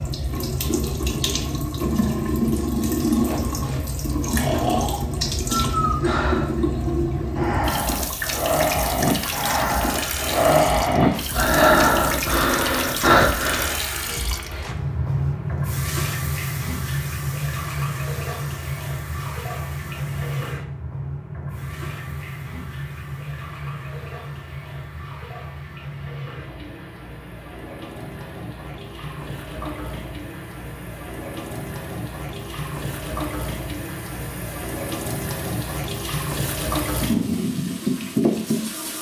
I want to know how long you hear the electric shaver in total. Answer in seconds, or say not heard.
not heard.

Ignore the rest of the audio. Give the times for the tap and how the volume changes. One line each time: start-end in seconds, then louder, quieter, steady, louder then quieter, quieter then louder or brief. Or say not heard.
0.0-38.9 quieter then louder.